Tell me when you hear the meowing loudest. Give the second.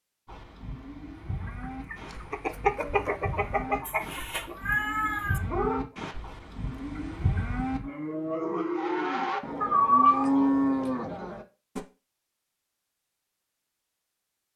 10 s.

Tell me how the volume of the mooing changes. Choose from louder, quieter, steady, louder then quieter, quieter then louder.
louder.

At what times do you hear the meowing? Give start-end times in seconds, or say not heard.
3.9-5.4, 9.6-10.4.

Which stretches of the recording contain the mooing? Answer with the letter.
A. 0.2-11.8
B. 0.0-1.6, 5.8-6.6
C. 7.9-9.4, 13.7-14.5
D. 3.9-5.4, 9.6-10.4
A.